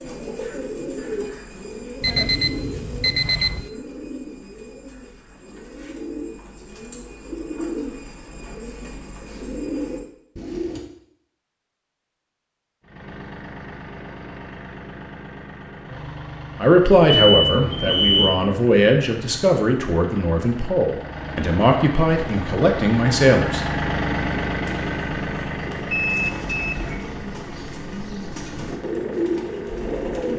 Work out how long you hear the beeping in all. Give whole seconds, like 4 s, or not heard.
4 s.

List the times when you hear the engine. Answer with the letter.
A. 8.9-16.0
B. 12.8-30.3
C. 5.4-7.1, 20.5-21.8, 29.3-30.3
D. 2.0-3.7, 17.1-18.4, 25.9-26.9
B.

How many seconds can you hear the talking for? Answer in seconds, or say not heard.
7 s.